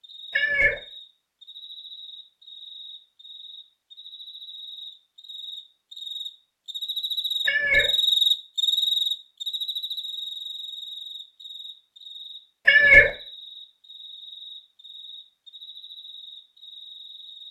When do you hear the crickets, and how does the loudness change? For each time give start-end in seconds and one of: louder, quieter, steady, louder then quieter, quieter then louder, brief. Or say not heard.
0.0-17.4 louder then quieter.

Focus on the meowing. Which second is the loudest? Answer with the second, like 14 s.
13 s.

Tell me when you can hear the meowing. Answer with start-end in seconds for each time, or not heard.
0.3-0.8, 7.5-7.9, 12.7-13.1.